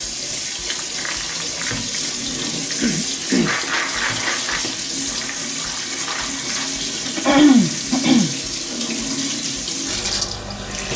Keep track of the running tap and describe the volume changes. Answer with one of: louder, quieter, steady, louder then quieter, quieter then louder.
steady.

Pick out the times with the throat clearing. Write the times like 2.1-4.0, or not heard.
2.8-3.5, 7.0-8.3.